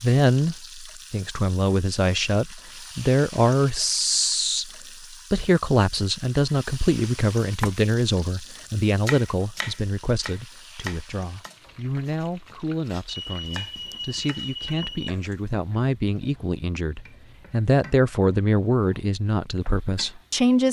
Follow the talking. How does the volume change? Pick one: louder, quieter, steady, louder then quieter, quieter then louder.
quieter then louder.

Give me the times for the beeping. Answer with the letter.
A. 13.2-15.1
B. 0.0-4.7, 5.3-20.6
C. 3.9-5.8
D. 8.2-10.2
A.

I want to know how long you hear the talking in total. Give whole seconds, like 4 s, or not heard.
20 s.